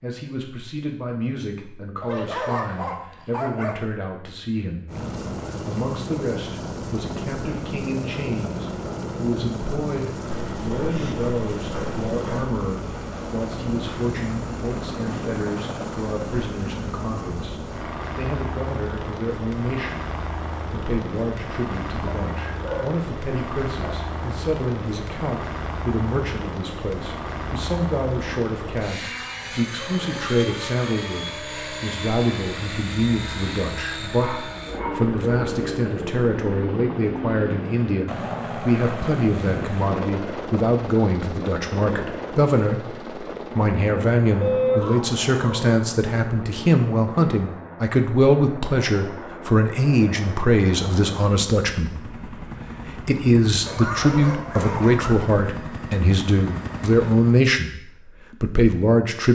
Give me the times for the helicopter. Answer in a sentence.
The helicopter can be heard from 4.8 to 57.5 s.